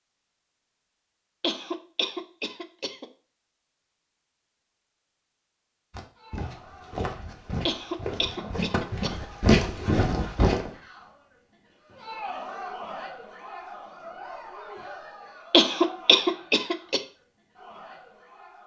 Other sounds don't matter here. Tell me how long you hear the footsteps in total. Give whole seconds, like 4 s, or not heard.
5 s.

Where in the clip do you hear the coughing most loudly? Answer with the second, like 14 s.
16 s.